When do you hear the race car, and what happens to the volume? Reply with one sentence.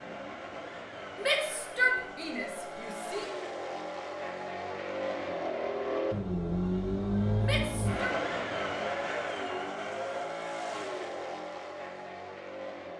The race car can be heard from 0.0 to 12.9 s, getting louder then quieter.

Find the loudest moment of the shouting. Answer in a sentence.
The loudest moment of the shouting is at 2 seconds.